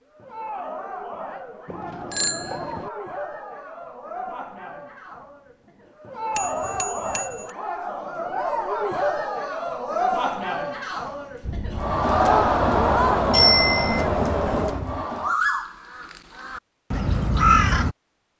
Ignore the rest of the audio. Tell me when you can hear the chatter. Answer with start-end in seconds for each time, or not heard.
0.1-15.3.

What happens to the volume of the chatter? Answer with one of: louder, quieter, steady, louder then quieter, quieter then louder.
louder.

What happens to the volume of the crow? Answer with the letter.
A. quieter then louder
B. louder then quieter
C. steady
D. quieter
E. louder
E.